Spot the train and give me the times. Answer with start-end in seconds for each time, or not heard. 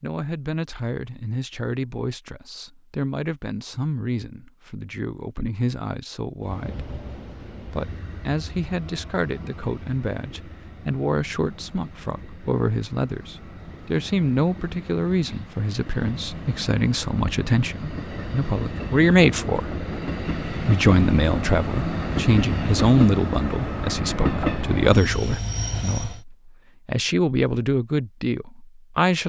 6.4-26.2.